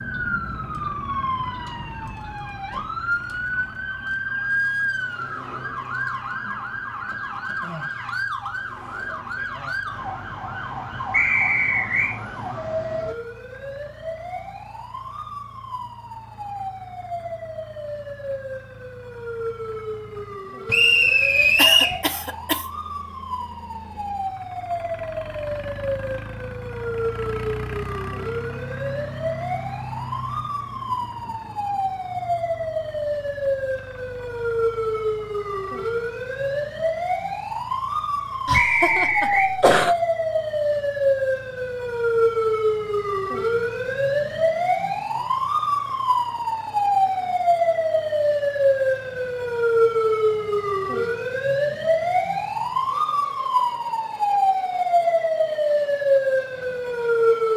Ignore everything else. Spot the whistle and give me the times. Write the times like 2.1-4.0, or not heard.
11.1-12.2, 20.6-21.9, 38.5-39.5.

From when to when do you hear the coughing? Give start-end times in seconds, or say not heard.
21.6-22.7, 38.5-40.0.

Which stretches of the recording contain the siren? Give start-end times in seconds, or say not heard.
0.0-57.5.